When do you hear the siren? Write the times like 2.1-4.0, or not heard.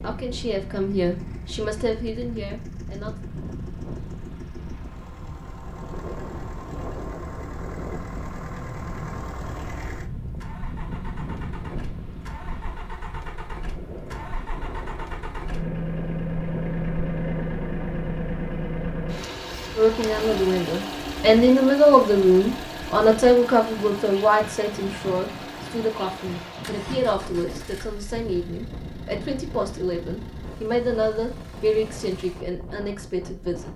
not heard.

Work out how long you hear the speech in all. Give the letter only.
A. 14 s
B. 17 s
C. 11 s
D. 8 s
B.